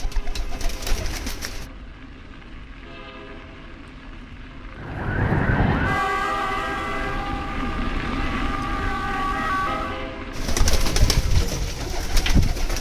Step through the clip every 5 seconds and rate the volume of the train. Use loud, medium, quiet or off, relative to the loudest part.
medium, loud, medium.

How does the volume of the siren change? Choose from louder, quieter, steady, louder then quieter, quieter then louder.
quieter then louder.